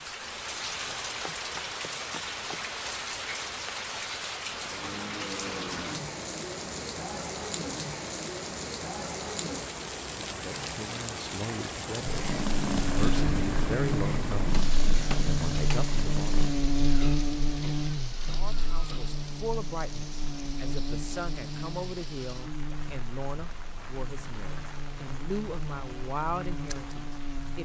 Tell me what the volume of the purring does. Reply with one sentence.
The loudness of the purring goes down.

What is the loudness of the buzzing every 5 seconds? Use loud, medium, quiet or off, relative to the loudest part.
off, off, loud, loud, medium, medium.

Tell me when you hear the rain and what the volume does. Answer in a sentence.
The rain can be heard from 0.0 to 27.6 s, getting quieter.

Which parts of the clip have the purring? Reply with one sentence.
You can hear the purring from 12.1 to 16.6 s.